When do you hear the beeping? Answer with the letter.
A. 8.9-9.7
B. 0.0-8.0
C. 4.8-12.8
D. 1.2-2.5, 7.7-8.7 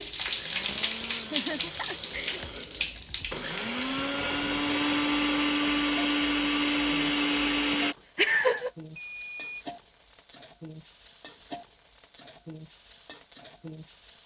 A.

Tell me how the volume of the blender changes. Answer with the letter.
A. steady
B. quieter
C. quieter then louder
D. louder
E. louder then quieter
D.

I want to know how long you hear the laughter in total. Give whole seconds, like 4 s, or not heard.
2 s.